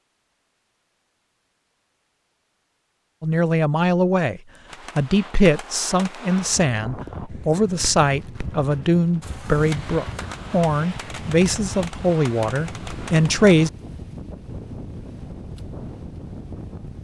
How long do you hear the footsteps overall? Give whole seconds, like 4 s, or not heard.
not heard.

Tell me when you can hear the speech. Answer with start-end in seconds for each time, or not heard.
3.2-13.7.